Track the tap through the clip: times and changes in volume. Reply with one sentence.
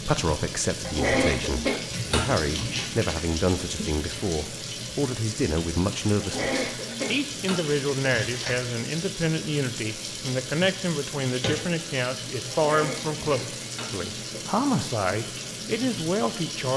You can hear the tap from 0.0 to 16.7 s, at a steady volume.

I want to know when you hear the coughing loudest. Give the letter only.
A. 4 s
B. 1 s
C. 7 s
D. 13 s
B.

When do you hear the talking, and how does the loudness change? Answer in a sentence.
You can hear the talking from 0.0 to 16.7 s, at a steady volume.